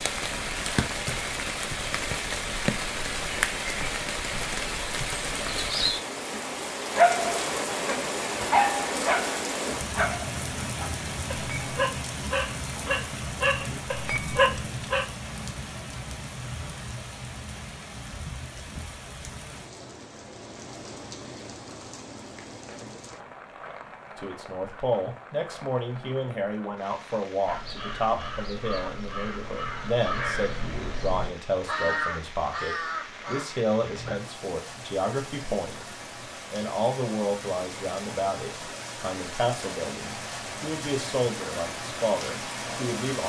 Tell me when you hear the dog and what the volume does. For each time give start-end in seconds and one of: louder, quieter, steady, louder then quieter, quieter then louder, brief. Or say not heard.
7.0-15.1 quieter then louder.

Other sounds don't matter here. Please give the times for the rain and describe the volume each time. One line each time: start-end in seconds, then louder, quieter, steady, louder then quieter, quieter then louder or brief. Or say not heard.
0.0-43.2 quieter then louder.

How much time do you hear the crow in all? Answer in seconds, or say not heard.
7 s.